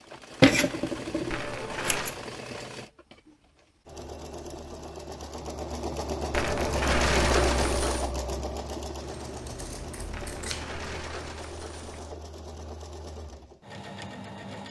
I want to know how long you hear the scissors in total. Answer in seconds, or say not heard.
4 s.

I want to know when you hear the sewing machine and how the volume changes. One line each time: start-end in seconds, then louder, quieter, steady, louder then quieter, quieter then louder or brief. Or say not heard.
0.0-14.6 louder then quieter.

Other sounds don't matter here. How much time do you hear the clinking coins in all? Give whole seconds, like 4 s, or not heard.
5 s.